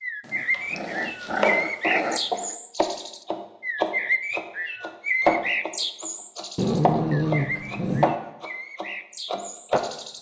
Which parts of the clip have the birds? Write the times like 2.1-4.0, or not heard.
0.0-10.1.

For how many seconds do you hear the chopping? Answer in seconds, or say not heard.
9 s.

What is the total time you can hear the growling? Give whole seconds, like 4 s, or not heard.
4 s.